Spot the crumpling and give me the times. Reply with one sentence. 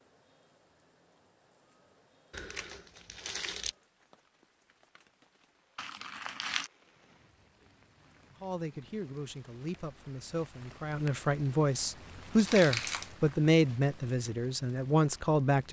You can hear the crumpling from 2.3 to 3.8 s, from 5.8 to 6.7 s and from 12.3 to 13.1 s.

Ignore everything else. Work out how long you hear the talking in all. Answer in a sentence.
The talking can be heard for 7 seconds in total.